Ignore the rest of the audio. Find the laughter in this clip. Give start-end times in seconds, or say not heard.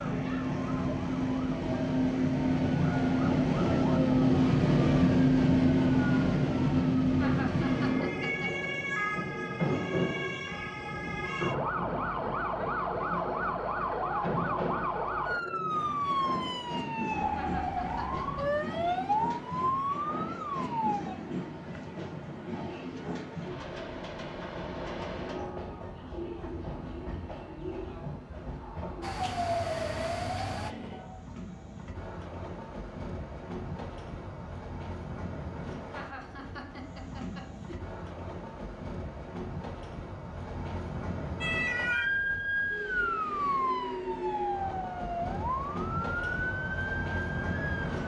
7.2-8.7, 17.4-18.6, 35.9-37.8.